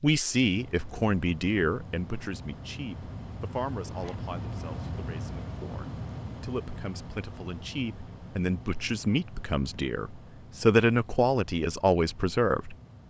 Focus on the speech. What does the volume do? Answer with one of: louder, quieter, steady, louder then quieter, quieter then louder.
quieter then louder.